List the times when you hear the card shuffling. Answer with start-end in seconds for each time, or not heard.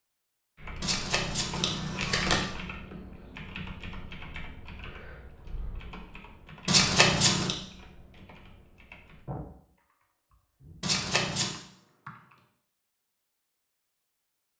0.8-2.5, 6.7-7.5, 10.8-11.6.